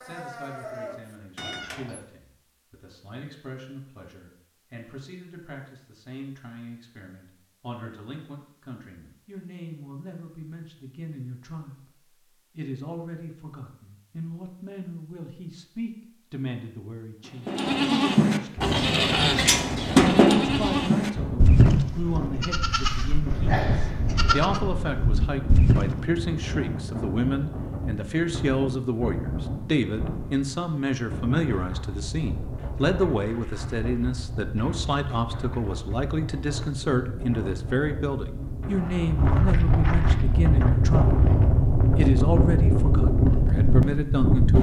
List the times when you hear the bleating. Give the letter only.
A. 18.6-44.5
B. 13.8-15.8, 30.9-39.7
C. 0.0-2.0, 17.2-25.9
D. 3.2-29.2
C.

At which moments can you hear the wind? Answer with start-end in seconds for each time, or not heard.
18.6-44.5.